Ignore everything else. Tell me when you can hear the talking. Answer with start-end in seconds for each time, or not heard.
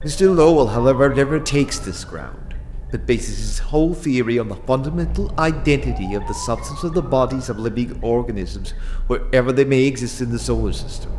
0.0-2.3, 2.9-11.0.